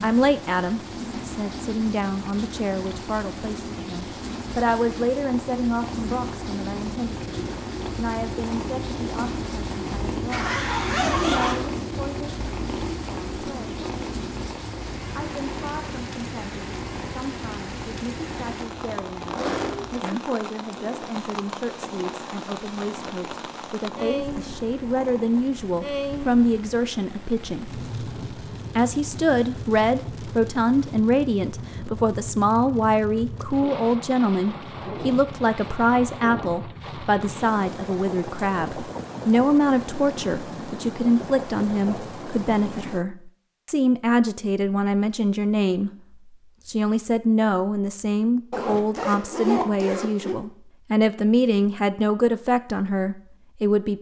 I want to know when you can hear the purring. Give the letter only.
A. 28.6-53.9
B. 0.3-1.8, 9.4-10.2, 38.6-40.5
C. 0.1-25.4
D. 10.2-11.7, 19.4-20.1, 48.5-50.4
C.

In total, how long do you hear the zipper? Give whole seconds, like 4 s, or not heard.
4 s.